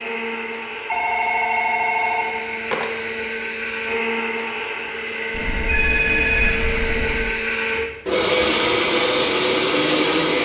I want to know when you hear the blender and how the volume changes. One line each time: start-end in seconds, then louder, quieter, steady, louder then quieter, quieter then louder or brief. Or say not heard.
0.0-10.4 louder.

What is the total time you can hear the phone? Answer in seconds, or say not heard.
4 s.